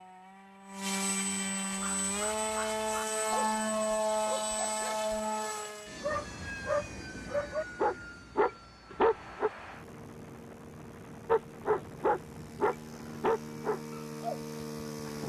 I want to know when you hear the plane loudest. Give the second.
4 s.